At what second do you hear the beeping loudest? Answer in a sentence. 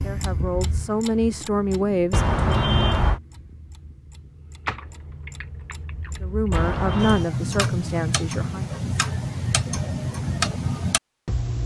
The loudest moment of the beeping is at 3 seconds.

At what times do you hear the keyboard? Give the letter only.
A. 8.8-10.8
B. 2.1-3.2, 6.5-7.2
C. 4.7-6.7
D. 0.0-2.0
C.